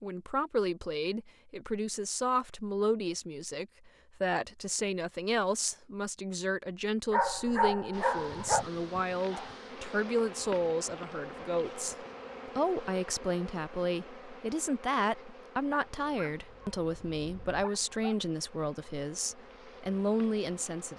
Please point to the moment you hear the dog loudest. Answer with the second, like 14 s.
8 s.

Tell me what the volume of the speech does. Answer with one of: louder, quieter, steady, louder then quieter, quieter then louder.
steady.